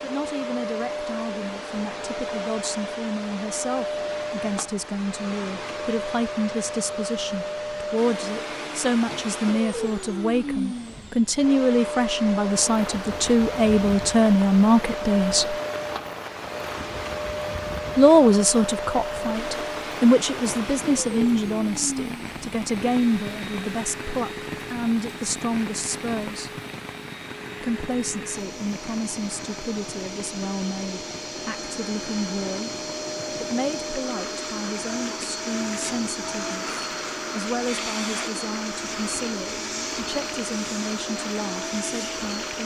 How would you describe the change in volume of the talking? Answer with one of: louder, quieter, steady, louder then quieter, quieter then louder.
louder then quieter.